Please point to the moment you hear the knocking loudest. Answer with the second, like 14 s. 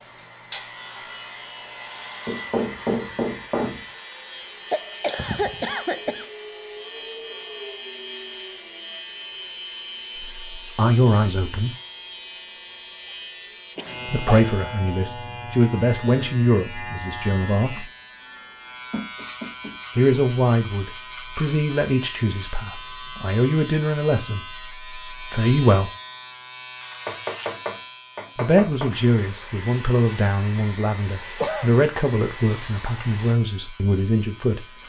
3 s.